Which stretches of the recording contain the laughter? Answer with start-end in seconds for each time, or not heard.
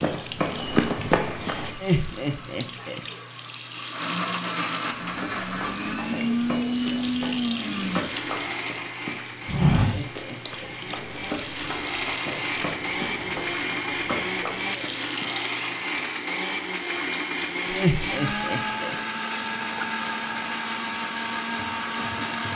1.7-3.0, 9.4-10.8, 17.6-18.9.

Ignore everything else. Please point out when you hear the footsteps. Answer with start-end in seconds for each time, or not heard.
0.0-1.7, 5.0-15.3.